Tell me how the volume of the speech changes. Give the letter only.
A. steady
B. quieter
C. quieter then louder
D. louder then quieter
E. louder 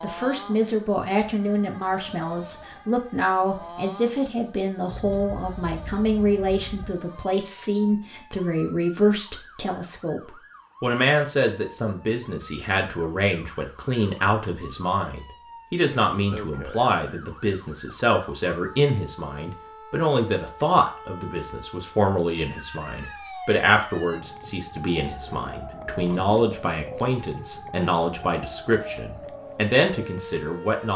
A.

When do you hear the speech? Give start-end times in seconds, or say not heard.
0.0-30.9.